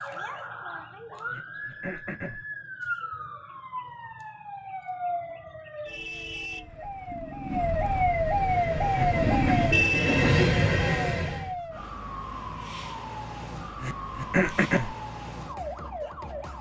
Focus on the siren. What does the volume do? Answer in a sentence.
The loudness of the siren goes up, then down.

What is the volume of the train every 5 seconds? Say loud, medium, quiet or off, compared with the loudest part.
off, medium, loud, off.